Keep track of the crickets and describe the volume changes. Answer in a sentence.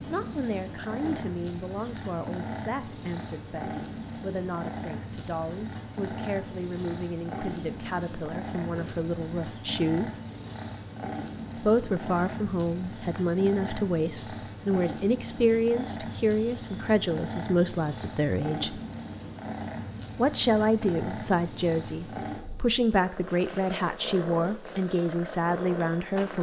The loudness of the crickets stays about the same.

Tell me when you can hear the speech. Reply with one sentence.
The speech can be heard from 0.1 to 10.2 s, from 11.6 to 18.8 s and from 20.1 to 26.3 s.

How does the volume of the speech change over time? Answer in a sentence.
The loudness of the speech goes up.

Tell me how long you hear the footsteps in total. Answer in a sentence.
The footsteps can't be heard in this clip.